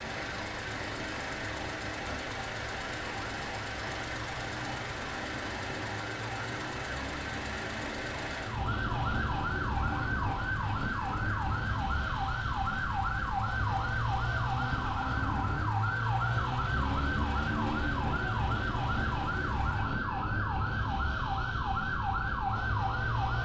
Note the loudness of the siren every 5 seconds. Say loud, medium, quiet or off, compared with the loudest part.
quiet, medium, loud, loud, loud.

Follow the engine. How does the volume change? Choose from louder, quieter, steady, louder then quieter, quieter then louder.
quieter.